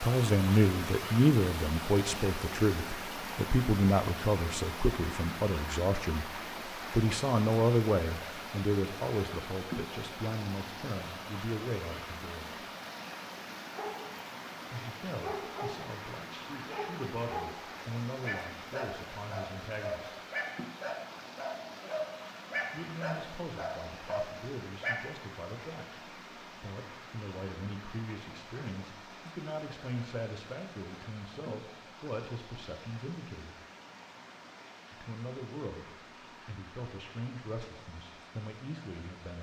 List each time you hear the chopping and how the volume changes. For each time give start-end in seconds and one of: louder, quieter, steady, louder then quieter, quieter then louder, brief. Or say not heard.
not heard.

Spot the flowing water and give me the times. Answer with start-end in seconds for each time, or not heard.
0.0-39.3.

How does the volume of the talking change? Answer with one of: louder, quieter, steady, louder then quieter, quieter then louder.
quieter.